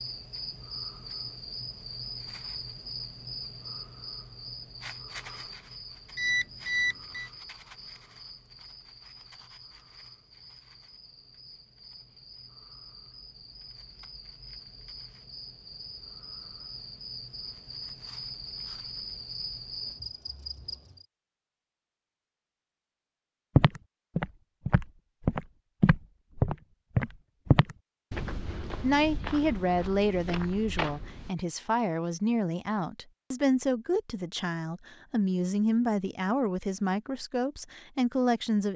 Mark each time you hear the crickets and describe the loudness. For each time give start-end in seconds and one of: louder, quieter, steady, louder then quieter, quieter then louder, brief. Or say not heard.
0.0-21.1 quieter then louder.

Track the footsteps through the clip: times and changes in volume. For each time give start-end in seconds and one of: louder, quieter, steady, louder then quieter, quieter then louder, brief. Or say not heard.
23.6-31.3 quieter.